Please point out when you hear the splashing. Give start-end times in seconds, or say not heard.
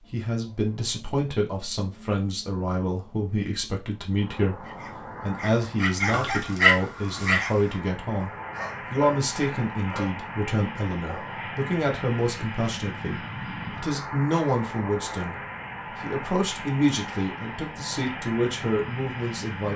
not heard.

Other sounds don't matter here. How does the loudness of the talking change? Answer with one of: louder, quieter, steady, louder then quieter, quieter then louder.
steady.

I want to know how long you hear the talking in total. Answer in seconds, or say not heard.
18 s.